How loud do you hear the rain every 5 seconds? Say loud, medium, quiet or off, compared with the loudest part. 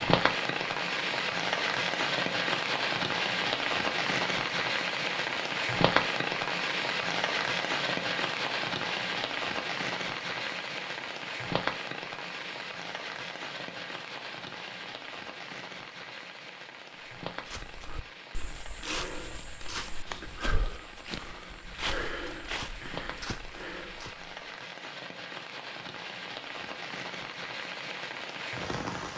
loud, loud, medium, quiet, quiet, medium.